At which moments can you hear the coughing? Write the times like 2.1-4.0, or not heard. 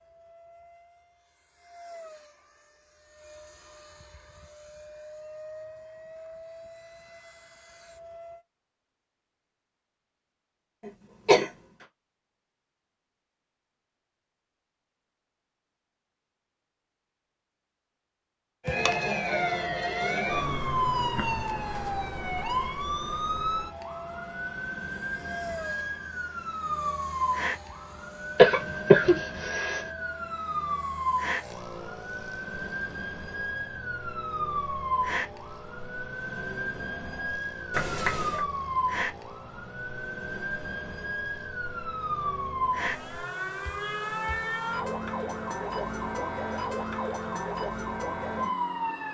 10.8-11.5, 28.4-29.8, 37.7-38.5.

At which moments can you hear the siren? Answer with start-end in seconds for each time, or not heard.
18.6-49.0.